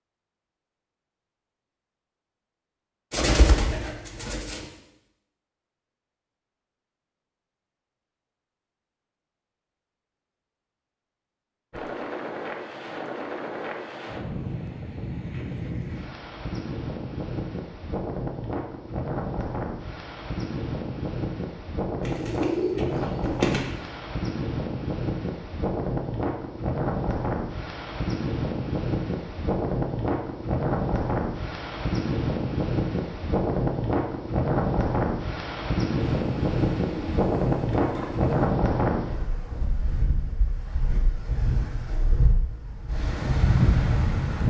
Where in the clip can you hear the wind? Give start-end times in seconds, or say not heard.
11.7-44.4.